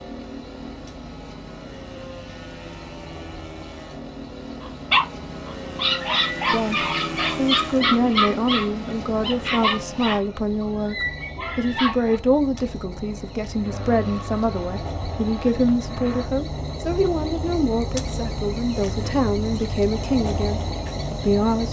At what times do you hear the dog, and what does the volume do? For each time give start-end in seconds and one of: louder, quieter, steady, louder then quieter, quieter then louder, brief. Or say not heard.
4.6-12.2 quieter.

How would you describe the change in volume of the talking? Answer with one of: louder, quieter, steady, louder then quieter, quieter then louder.
steady.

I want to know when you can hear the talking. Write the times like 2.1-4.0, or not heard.
6.5-21.6.